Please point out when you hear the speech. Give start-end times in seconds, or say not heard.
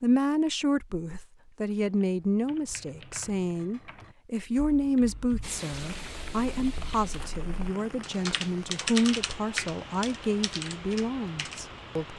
0.0-12.1.